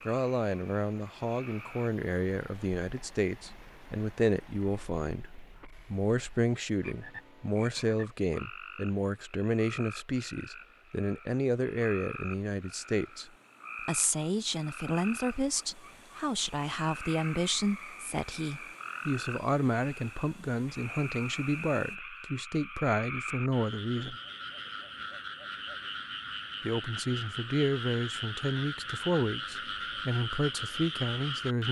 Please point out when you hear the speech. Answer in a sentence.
You can hear the speech from 0.1 to 24.2 s and from 26.6 to 31.6 s.